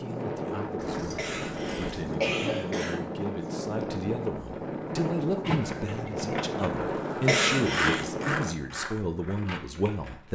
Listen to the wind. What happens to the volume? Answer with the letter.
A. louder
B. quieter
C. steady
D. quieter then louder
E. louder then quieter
C.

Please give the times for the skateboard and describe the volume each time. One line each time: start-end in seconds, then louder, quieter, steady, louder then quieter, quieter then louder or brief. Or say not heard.
6.2-10.3 louder then quieter.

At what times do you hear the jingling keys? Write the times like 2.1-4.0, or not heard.
0.8-2.1, 5.4-6.7.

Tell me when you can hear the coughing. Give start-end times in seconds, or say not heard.
1.1-3.0, 7.2-8.1.